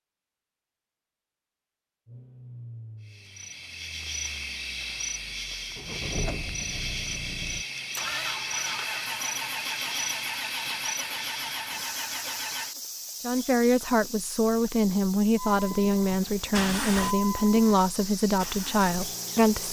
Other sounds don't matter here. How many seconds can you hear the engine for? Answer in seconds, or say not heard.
15 s.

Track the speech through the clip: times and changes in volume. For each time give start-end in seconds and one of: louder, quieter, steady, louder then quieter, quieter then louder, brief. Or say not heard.
13.2-19.6 steady.